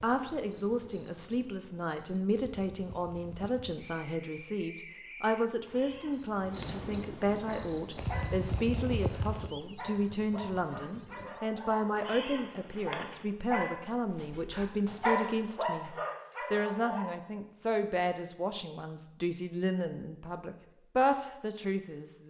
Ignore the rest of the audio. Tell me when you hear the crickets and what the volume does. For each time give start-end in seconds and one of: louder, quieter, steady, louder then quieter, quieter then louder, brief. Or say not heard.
0.0-11.4 louder.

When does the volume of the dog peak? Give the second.
15 s.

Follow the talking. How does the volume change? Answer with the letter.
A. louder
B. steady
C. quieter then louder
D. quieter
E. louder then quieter
B.